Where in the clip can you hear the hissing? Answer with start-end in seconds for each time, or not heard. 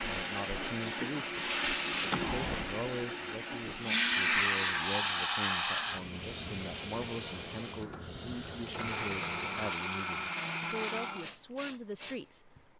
0.0-12.2.